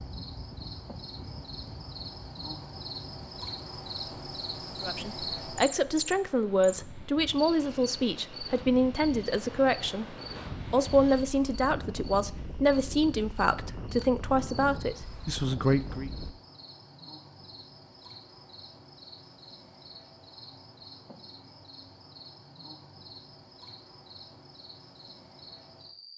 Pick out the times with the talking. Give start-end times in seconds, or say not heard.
4.8-16.1.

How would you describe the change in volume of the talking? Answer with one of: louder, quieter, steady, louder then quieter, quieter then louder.
steady.